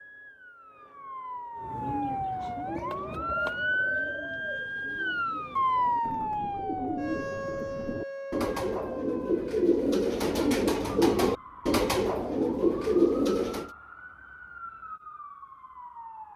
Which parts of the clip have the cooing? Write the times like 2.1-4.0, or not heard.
1.6-13.7.